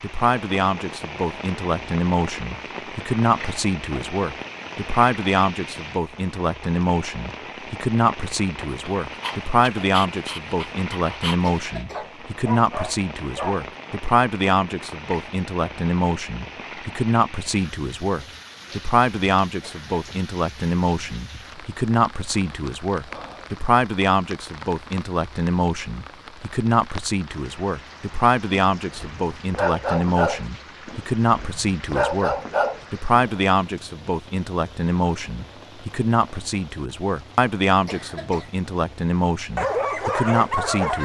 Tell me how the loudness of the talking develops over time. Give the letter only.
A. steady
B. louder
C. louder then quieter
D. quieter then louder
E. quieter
A.